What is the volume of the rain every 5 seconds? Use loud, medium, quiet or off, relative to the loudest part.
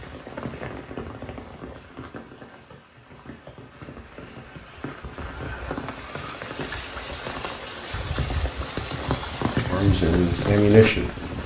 medium, loud, loud.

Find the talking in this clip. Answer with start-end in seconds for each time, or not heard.
9.7-11.1.